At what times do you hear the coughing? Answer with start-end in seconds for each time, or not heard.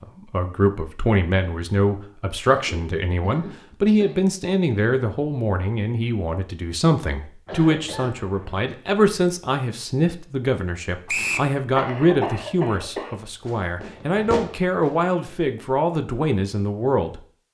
2.5-4.2, 7.5-8.8, 11.8-13.2.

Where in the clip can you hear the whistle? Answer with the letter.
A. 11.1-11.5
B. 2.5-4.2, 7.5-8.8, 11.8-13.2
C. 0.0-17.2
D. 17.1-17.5
A.